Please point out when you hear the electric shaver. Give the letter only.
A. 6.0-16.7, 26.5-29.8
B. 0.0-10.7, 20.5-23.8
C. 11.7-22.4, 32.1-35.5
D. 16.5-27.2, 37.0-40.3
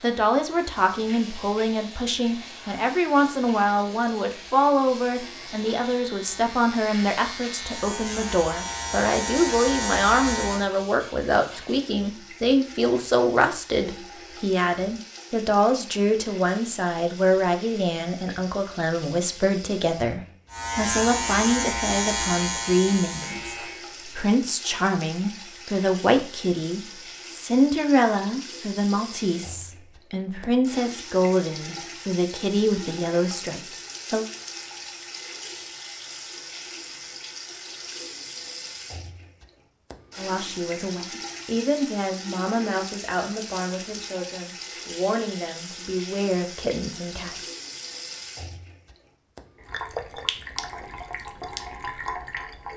B.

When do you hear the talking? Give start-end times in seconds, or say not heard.
0.0-34.2, 40.1-47.4.